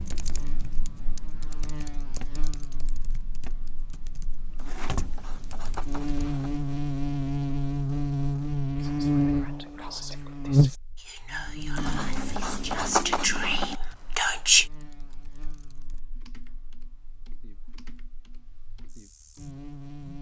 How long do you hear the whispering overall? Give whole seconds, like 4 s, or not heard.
6 s.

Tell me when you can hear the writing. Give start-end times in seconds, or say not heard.
4.5-6.6, 11.8-13.8.